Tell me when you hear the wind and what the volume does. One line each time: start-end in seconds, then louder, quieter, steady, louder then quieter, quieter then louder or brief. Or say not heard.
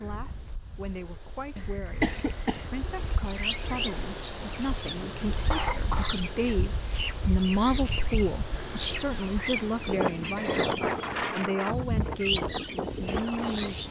0.0-13.8 louder.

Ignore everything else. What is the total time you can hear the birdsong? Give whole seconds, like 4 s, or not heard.
11 s.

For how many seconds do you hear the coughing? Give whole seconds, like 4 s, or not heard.
4 s.